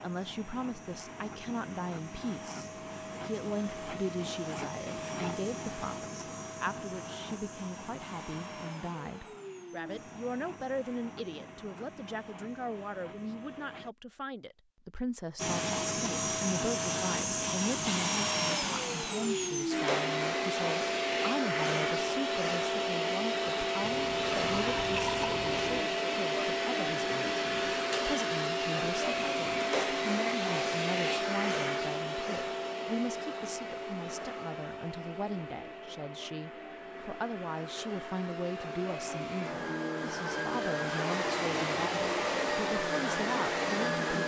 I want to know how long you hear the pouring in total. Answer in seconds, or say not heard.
2 s.